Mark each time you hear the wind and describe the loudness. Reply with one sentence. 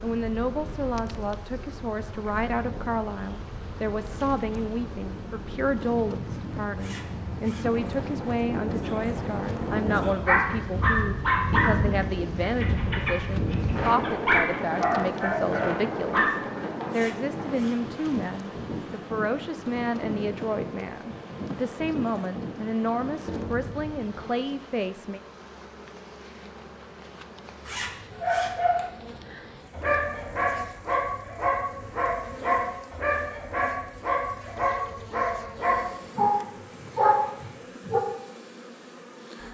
The wind can be heard from 0.0 to 24.2 s, getting louder then quieter.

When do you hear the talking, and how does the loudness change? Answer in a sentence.
You can hear the talking from 0.0 to 25.2 s, at a steady volume.